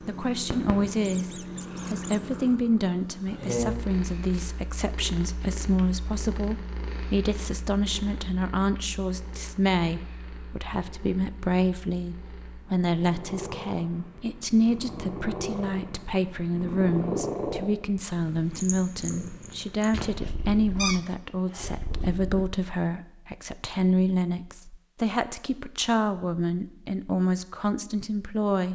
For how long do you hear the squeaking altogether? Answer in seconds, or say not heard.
4 s.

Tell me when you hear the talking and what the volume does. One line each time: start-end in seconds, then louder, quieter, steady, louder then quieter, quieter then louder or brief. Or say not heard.
0.1-28.7 steady.